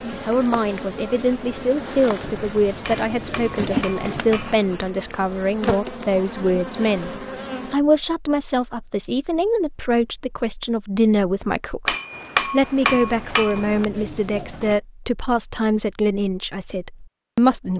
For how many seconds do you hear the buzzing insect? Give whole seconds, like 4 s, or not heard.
8 s.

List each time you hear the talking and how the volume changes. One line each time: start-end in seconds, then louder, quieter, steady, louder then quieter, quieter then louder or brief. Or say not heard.
0.1-17.7 steady.